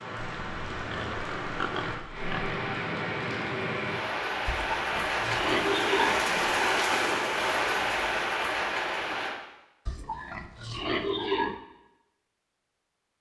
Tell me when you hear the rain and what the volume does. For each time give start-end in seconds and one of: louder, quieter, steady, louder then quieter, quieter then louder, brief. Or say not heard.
0.0-9.3 louder.